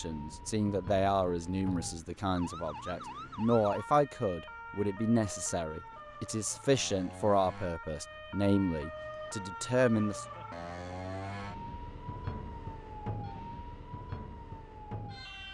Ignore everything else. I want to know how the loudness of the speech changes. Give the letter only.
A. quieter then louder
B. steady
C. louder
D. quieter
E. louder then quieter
B.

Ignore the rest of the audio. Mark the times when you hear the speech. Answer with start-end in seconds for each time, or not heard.
0.0-10.2.